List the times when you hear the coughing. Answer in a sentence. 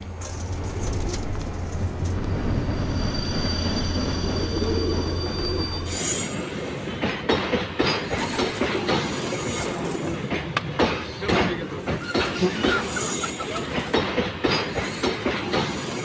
You can't hear the coughing here.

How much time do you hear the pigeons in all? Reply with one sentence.
You can hear the pigeons for 8 seconds altogether.